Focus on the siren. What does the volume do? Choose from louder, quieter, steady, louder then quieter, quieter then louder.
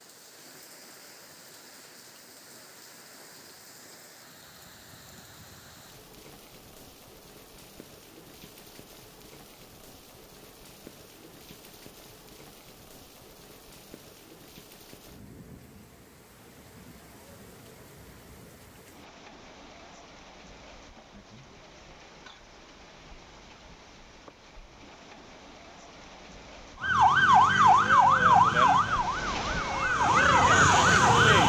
quieter then louder.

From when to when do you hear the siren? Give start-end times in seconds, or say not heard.
26.8-31.4.